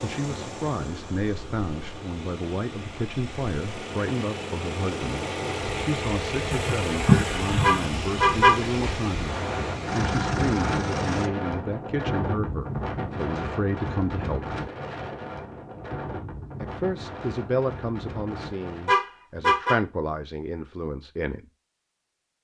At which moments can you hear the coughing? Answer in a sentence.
You can hear the coughing from 6.5 to 7.8 s.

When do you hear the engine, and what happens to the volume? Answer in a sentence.
The engine can be heard from 0.0 to 11.3 s, getting louder.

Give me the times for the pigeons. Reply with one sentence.
You can't hear the pigeons here.